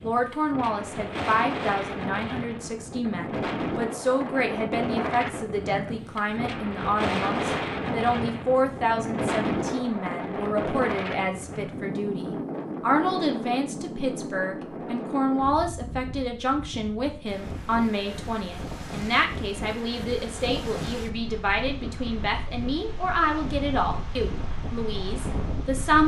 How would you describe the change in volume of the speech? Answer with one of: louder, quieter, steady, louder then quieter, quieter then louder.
steady.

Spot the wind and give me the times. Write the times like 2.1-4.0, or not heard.
0.0-26.0.